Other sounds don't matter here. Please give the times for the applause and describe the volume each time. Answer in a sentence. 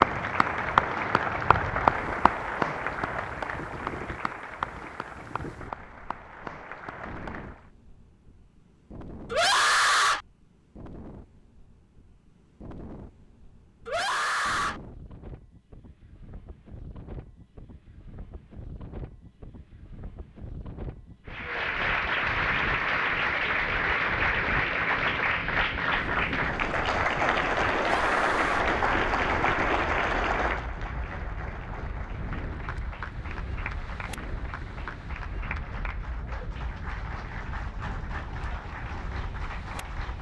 You can hear the applause from 0.0 to 7.6 s, getting quieter; and from 21.3 to 40.1 s, getting quieter.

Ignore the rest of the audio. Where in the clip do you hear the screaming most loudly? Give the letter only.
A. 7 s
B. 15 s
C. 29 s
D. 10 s
D.